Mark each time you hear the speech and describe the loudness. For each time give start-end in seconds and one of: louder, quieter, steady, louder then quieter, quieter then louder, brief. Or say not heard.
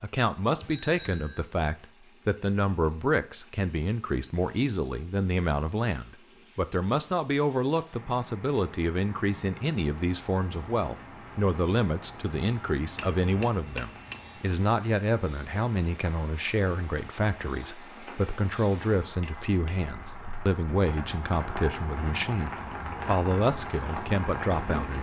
0.0-24.9 steady.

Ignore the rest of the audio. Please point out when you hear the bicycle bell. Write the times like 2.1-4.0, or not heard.
0.6-1.4, 12.9-14.4, 19.2-19.9.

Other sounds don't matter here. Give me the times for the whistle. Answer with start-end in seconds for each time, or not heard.
not heard.